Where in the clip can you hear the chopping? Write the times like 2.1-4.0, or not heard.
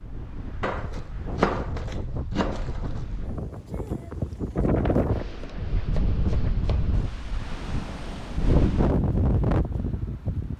0.6-3.0, 5.3-7.0.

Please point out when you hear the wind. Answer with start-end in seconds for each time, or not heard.
0.0-10.5.